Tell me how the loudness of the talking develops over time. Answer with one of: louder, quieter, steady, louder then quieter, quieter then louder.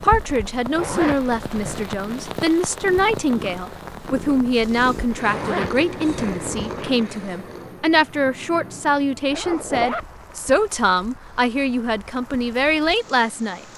steady.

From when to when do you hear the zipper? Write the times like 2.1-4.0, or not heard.
0.8-1.9, 5.2-7.0, 9.3-10.1.